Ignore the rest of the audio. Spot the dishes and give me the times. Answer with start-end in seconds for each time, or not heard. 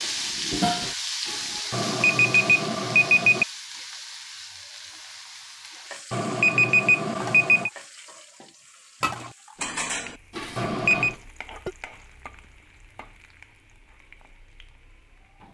0.0-1.6, 9.0-11.8.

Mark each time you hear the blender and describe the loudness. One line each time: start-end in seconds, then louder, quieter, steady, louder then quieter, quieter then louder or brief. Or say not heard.
not heard.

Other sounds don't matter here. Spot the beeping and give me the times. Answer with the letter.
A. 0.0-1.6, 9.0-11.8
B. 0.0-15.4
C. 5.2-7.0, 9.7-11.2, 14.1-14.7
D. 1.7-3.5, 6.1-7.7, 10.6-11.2
D.